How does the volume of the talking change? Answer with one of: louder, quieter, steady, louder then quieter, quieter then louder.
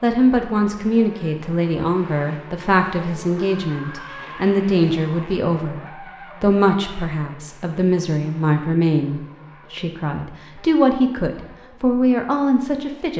steady.